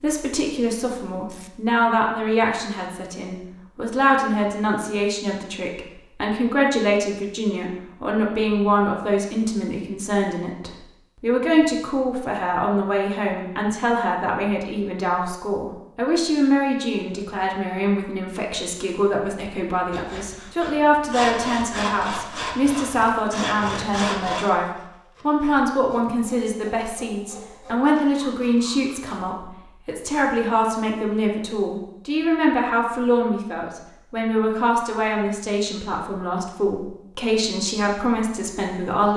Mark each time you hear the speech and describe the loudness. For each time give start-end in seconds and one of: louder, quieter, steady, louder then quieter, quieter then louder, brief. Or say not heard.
0.0-39.1 steady.